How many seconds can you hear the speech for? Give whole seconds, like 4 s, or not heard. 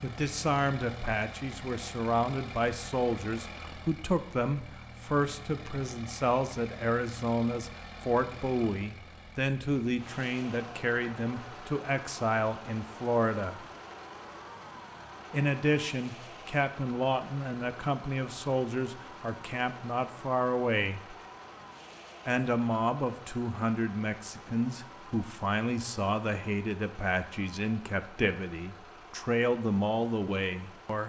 28 s.